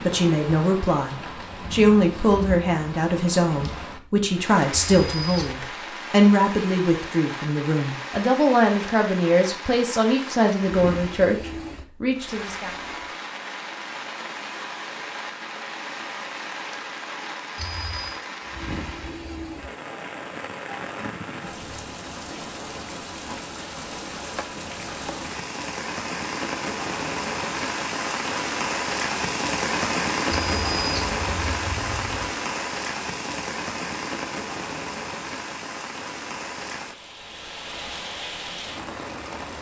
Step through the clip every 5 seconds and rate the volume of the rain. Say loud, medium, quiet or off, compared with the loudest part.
medium, medium, medium, medium, medium, loud, loud, medium.